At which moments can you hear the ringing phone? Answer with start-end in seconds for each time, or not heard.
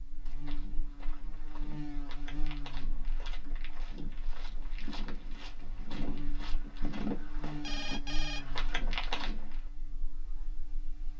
7.5-8.6.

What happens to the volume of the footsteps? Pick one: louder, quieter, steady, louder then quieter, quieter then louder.
louder.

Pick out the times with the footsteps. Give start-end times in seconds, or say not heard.
0.1-9.6.